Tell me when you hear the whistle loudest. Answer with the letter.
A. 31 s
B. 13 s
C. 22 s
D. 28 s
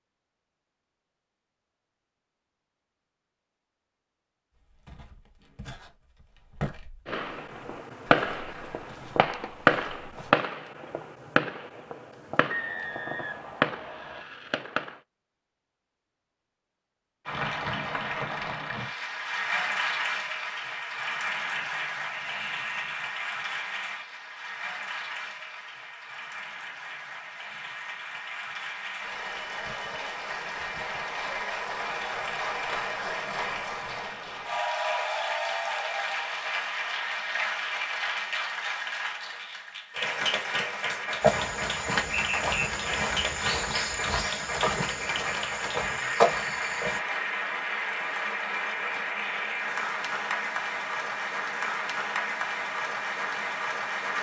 B.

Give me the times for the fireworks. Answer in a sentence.
You can hear the fireworks from 7.0 to 15.0 s.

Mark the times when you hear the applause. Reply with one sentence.
The applause can be heard from 17.2 to 54.1 s.